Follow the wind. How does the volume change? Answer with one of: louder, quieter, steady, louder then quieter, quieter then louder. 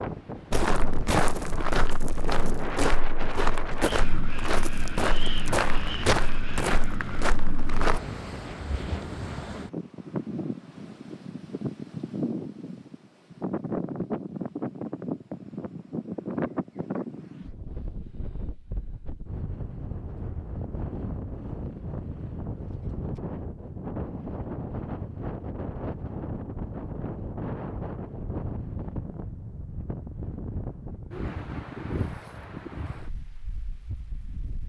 steady.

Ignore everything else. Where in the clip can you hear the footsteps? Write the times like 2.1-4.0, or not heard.
0.5-8.0.